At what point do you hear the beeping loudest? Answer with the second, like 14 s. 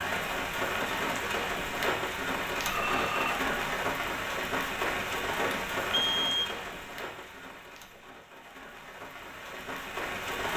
6 s.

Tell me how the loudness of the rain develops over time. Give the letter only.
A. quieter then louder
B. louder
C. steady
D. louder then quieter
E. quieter
E.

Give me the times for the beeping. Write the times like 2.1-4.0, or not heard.
2.6-3.4, 5.5-6.5.